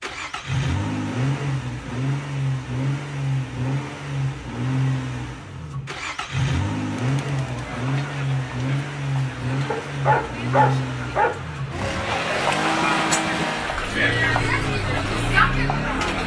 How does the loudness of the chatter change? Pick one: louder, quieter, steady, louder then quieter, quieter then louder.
louder.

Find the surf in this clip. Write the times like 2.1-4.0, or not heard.
not heard.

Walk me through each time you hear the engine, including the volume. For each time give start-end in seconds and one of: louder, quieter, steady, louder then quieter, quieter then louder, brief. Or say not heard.
0.0-16.2 steady.